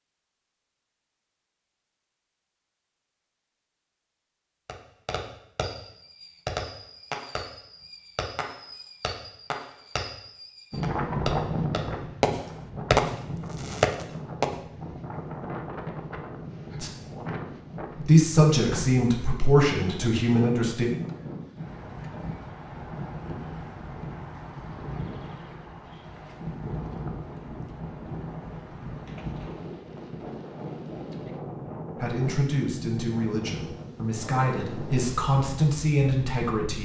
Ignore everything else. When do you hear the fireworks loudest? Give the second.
13 s.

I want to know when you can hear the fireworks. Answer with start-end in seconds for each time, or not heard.
4.7-14.5.